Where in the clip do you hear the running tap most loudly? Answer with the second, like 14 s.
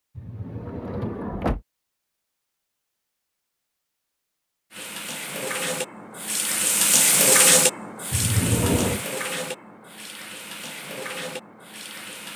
7 s.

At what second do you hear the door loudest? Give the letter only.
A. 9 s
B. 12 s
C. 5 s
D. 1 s
A.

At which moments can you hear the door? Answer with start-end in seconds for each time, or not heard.
0.1-1.6, 8.1-9.1.